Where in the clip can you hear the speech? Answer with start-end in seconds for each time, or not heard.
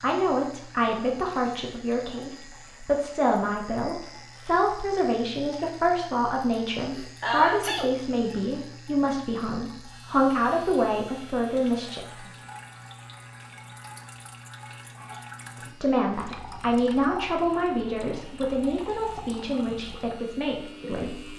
0.0-12.2, 15.6-21.3.